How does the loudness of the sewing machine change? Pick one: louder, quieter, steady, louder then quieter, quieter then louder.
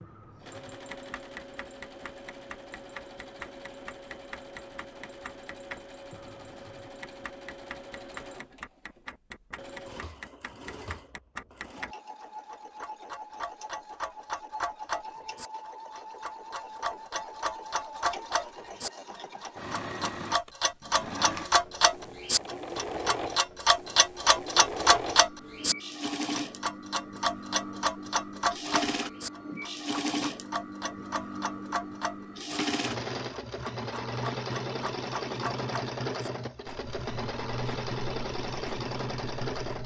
louder.